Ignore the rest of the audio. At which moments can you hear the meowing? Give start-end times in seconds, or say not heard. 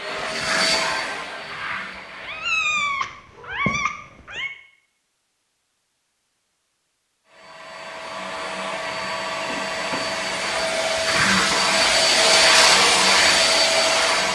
2.2-4.5.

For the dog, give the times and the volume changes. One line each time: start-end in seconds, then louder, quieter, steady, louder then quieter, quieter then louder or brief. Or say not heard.
not heard.